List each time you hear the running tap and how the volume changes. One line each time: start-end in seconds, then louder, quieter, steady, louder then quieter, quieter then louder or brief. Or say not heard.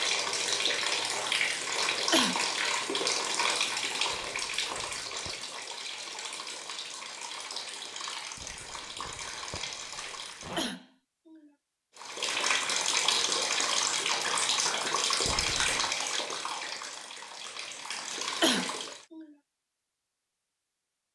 0.0-10.7 quieter
11.9-19.1 quieter.